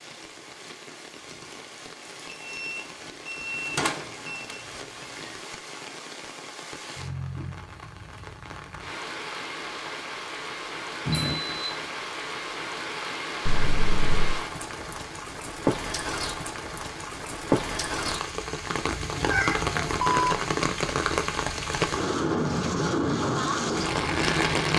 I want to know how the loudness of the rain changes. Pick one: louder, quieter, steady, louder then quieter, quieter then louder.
louder.